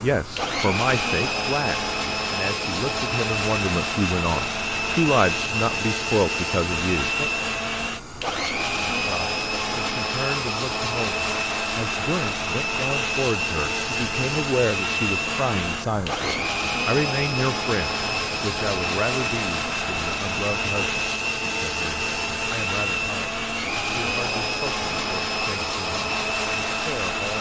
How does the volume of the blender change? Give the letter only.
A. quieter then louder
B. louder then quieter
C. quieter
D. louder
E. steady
E.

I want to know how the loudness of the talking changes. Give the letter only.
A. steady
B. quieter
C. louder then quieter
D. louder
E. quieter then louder
B.